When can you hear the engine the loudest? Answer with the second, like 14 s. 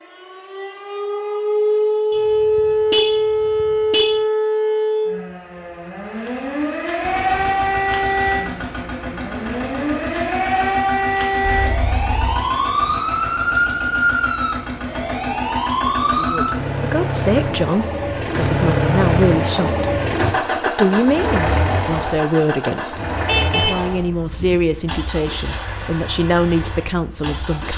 19 s.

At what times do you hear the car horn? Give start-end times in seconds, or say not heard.
2.1-4.2, 11.4-12.4, 23.1-24.6.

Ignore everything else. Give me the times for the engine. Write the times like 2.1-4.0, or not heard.
7.0-27.7.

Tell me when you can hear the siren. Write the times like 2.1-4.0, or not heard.
0.0-16.5.